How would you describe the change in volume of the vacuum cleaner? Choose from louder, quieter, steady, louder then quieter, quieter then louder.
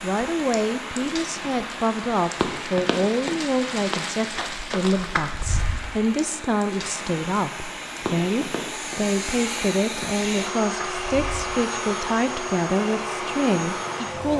louder.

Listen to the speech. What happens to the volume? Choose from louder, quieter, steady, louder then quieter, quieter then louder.
steady.